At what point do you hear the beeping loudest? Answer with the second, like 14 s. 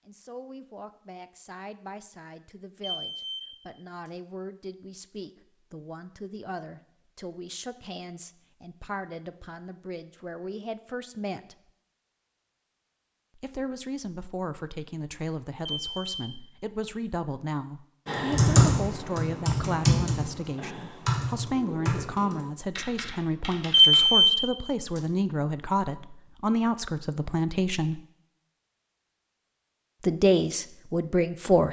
24 s.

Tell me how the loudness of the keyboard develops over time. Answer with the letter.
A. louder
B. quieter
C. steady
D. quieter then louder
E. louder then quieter
B.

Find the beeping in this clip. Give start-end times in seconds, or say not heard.
2.8-3.5, 15.7-16.1, 23.7-24.4.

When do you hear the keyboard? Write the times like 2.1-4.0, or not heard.
18.1-24.1.